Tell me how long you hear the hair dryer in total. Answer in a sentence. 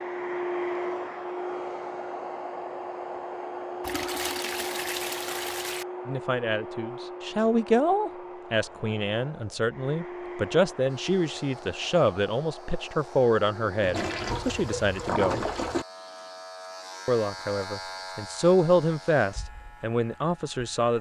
You can hear the hair dryer for 15 seconds altogether.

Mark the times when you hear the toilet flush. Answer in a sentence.
The toilet flush can be heard from 3.8 to 5.8 s and from 13.8 to 15.8 s.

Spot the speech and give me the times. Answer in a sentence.
You can hear the speech from 6.0 to 15.4 s and from 17.1 to 20.9 s.